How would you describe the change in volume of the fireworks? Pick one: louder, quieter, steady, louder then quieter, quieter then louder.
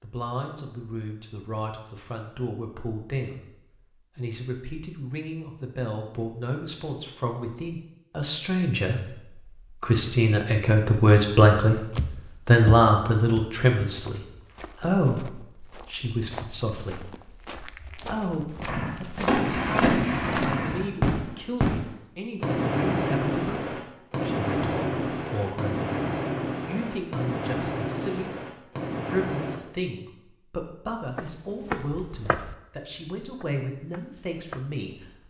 quieter.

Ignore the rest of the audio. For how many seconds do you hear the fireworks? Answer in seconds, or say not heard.
11 s.